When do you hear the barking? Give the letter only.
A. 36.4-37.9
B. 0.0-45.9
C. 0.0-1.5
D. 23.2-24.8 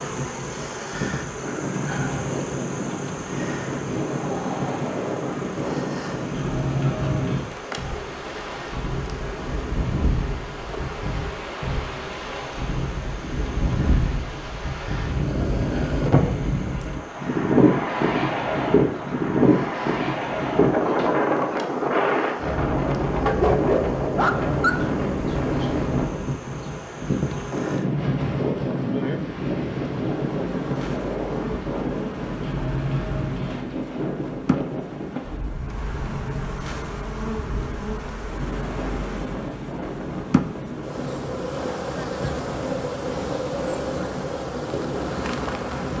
D.